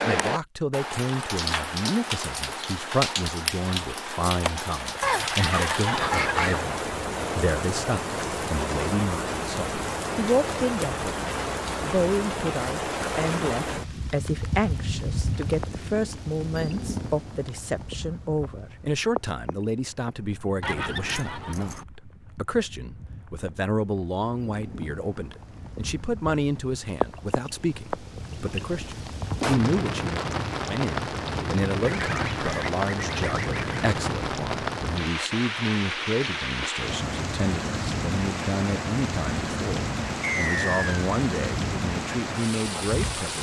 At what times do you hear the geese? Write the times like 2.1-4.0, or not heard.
5.0-6.7, 20.6-21.9, 31.8-33.9.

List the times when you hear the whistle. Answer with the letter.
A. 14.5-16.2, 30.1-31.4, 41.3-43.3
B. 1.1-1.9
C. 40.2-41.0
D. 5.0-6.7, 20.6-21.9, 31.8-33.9
C.